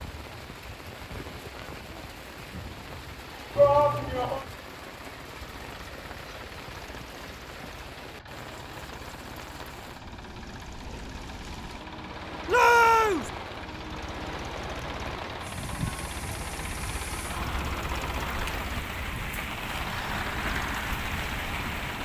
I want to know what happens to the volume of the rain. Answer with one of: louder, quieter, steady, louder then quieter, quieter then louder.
louder.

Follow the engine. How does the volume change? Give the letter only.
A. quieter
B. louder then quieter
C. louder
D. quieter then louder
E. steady
C.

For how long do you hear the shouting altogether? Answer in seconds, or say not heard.
2 s.